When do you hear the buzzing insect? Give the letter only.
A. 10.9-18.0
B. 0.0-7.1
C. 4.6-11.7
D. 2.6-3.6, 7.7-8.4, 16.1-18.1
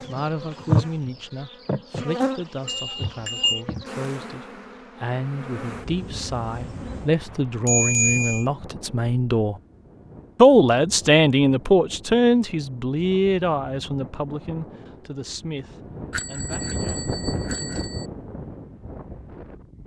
B.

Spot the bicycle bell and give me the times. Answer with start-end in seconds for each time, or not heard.
2.6-3.6, 7.7-8.4, 16.1-18.1.